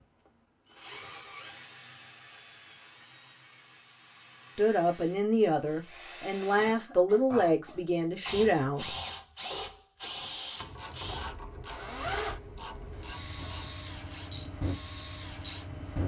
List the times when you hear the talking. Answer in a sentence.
You can hear the talking from 4.5 to 8.9 s.